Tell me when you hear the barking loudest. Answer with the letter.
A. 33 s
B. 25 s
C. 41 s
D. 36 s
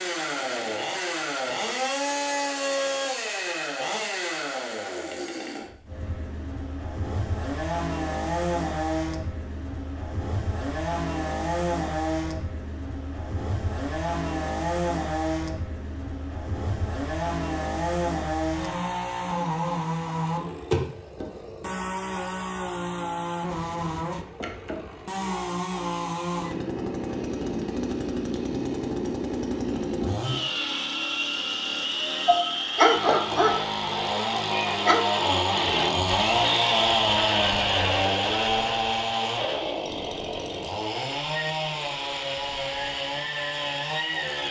A.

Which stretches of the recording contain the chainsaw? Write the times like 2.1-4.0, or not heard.
0.0-44.4.